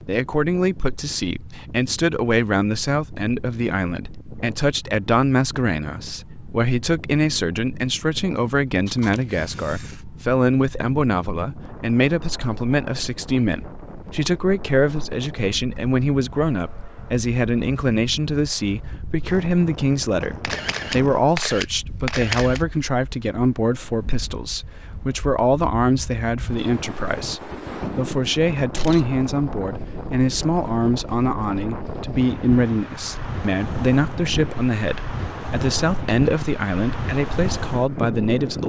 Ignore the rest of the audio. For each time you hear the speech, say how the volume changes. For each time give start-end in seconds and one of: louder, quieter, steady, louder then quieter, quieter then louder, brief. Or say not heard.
0.1-38.6 steady.